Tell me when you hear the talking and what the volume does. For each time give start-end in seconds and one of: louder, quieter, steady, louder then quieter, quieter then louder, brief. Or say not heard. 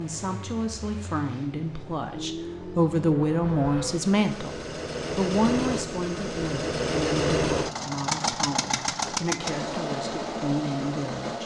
0.0-11.4 louder then quieter.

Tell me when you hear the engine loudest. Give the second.
7 s.